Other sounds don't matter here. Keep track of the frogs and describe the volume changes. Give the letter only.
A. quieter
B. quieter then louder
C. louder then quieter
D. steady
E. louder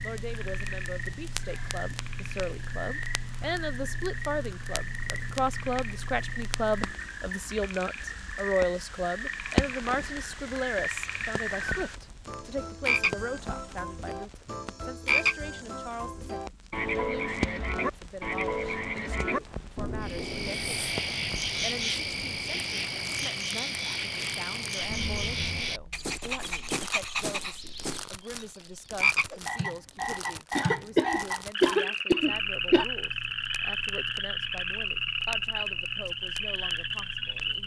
E.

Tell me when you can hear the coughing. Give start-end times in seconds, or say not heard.
30.6-32.9.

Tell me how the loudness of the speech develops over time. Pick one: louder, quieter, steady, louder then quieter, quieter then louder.
quieter.